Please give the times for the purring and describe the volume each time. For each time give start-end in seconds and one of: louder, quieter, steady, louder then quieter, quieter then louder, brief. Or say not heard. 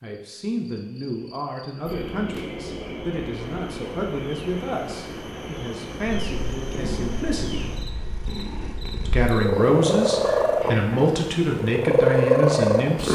6.0-13.1 louder.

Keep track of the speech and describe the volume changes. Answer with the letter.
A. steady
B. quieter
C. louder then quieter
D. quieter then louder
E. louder
E.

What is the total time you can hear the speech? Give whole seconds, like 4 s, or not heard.
12 s.